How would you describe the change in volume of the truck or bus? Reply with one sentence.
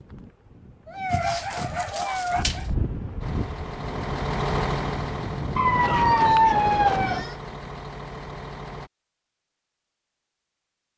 The volume of the truck or bus goes down.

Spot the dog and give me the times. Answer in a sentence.
You can hear the dog from 1.1 to 2.6 s and from 5.5 to 7.3 s.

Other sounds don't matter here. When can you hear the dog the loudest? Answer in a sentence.
The loudest moment of the dog is at 6 seconds.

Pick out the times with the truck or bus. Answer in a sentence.
You can hear the truck or bus from 3.2 to 8.9 s.